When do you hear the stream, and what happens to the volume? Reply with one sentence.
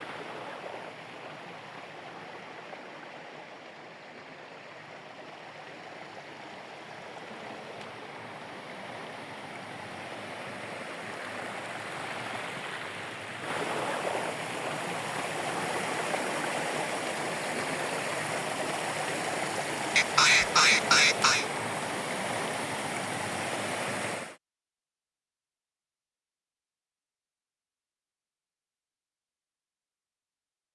The stream can be heard from 0.0 to 24.4 s, getting louder.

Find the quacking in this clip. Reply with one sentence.
The quacking can be heard from 19.9 to 21.4 s.